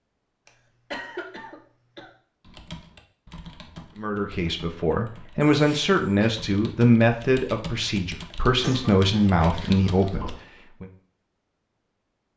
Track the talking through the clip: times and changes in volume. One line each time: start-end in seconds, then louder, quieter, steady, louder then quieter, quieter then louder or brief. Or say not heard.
4.0-10.8 steady.